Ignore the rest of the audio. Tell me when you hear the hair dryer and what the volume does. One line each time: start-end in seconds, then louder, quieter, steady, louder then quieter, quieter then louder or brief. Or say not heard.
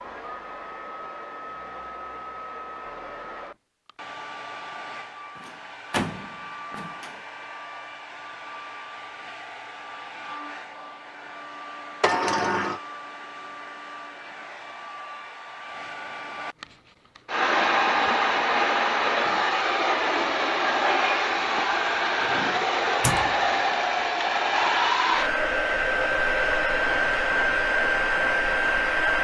0.0-29.1 louder.